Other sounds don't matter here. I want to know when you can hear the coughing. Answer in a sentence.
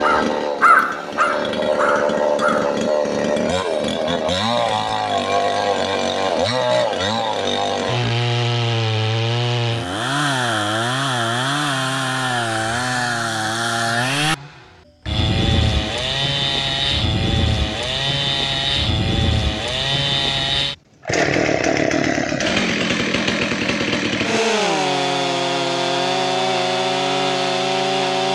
You can't hear the coughing here.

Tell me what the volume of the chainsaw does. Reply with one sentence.
The loudness of the chainsaw stays about the same.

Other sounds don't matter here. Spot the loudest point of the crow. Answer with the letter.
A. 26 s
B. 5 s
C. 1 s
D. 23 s
C.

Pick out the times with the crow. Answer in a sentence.
You can hear the crow from 0.0 to 2.8 s.